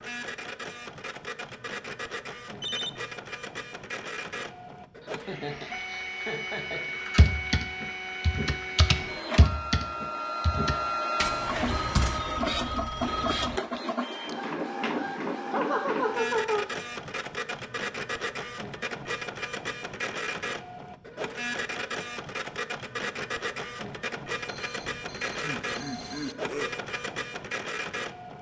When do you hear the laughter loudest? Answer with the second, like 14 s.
16 s.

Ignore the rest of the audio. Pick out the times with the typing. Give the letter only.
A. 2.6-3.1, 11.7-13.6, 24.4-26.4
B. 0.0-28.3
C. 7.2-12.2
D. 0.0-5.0
C.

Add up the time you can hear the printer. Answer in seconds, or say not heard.
28 s.